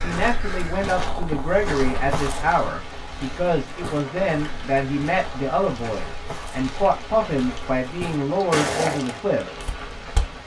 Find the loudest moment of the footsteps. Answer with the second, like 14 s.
9 s.